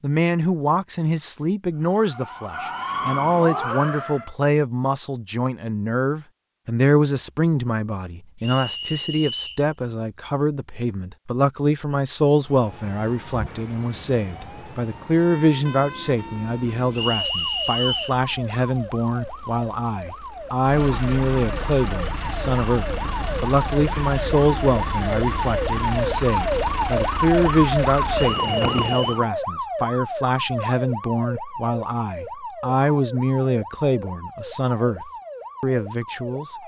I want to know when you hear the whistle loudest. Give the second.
18 s.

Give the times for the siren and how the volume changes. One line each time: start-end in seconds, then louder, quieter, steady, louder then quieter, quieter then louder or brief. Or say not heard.
1.8-4.3 brief
12.3-36.6 louder then quieter.